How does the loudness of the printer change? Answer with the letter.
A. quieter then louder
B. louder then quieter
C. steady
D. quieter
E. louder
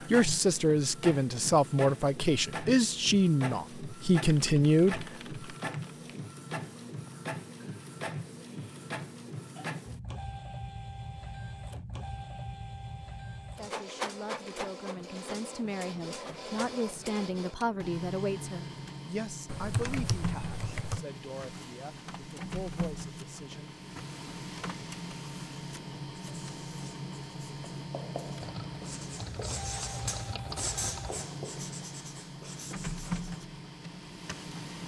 C.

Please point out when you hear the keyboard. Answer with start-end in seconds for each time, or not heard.
4.2-6.1, 19.4-21.1, 28.4-31.2.